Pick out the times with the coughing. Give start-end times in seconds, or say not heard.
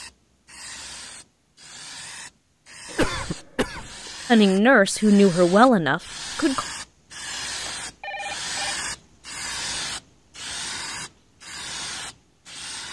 2.9-4.1.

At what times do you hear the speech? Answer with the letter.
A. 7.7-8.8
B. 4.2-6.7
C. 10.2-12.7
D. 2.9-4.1
B.